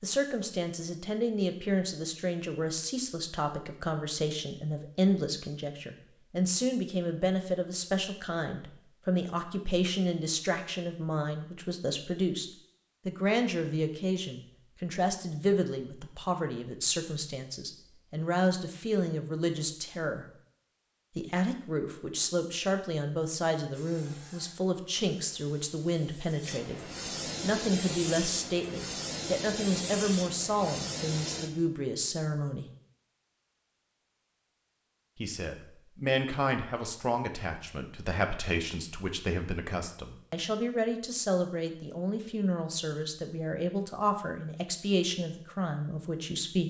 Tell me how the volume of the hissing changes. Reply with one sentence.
The volume of the hissing goes up.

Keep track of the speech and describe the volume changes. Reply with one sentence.
The volume of the speech stays about the same.